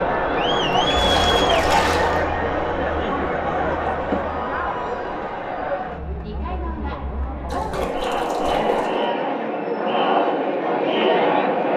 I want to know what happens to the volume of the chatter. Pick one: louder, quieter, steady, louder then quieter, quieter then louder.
quieter then louder.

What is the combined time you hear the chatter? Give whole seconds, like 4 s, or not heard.
12 s.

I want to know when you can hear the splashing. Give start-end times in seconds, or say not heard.
0.6-2.2, 7.5-8.9.